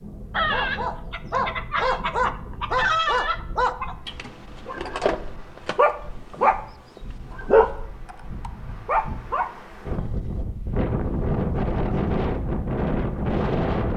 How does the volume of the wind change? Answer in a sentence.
The volume of the wind goes down, then up.